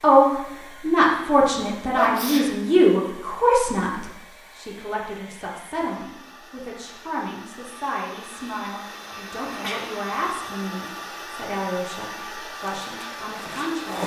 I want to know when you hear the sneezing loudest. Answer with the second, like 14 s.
2 s.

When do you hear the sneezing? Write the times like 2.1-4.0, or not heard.
1.9-2.5, 9.4-10.4.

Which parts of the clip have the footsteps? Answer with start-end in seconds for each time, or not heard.
12.5-14.0.